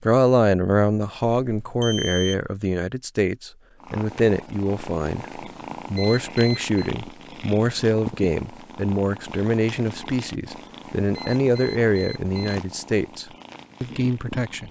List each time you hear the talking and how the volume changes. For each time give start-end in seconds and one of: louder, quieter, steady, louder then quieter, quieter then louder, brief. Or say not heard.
0.0-14.6 steady.